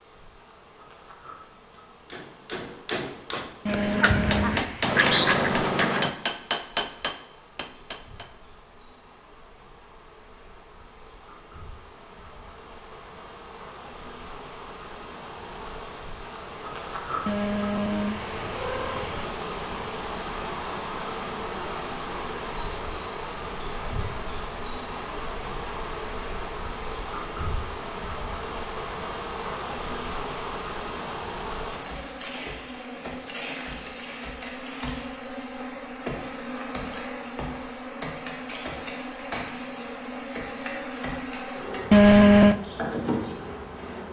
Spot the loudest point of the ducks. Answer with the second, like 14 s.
5 s.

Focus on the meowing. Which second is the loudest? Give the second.
42 s.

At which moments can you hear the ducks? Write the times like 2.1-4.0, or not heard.
3.6-6.1.